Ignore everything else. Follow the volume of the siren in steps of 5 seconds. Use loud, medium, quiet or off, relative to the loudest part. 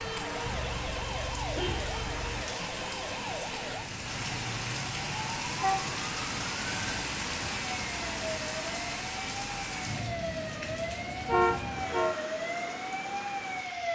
loud, medium, loud.